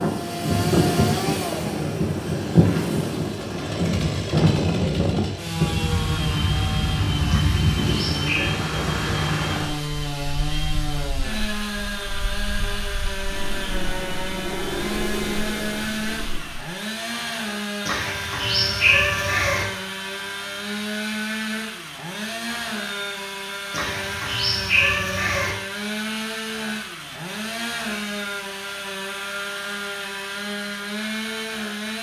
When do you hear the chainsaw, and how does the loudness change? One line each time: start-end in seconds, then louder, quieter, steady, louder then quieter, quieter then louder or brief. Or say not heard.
0.0-31.9 steady.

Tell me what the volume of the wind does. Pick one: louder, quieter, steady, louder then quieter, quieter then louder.
quieter then louder.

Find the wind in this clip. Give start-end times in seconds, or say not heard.
0.0-16.6.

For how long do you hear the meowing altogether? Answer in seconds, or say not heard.
5 s.